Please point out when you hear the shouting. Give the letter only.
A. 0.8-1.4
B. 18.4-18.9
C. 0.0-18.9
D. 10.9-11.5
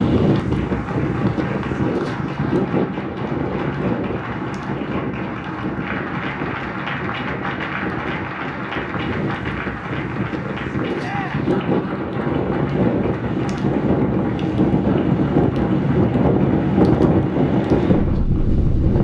D.